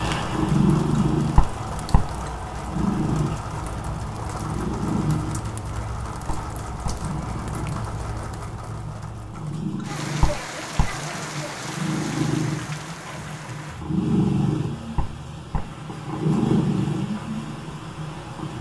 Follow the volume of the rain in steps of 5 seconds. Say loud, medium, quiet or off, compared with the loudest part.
loud, loud, loud, medium.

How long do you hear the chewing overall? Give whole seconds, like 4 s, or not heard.
3 s.